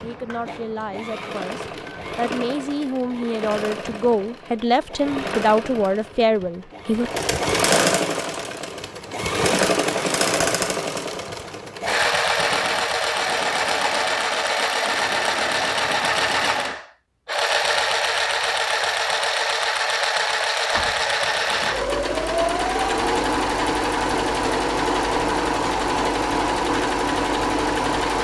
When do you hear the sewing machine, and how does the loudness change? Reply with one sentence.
You can hear the sewing machine from 0.0 to 28.2 s, getting louder.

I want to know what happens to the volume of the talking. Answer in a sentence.
The loudness of the talking goes up.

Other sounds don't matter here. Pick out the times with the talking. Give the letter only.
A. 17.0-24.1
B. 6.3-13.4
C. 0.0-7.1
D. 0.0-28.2
C.